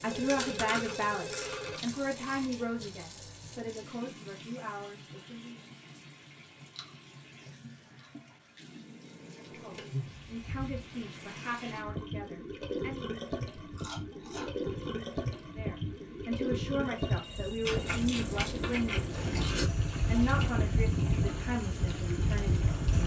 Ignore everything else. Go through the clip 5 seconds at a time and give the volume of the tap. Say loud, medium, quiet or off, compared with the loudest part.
medium, medium, loud, loud, loud.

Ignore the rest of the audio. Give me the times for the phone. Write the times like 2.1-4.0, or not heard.
0.1-1.9, 16.9-17.8.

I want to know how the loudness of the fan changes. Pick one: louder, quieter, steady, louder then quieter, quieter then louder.
louder.